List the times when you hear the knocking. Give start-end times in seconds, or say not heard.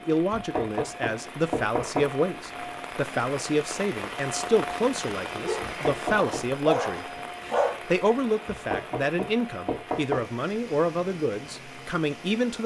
0.3-2.1, 5.6-6.5, 8.4-10.2.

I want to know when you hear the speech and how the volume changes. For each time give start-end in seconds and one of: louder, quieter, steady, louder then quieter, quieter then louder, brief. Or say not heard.
0.0-12.6 steady.